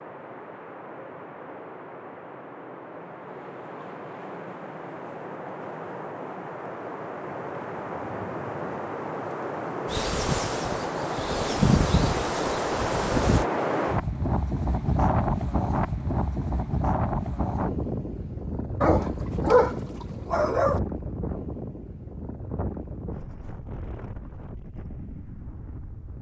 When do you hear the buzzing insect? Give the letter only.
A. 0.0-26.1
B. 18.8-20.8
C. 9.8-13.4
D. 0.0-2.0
C.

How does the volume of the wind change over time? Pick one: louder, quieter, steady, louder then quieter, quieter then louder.
louder then quieter.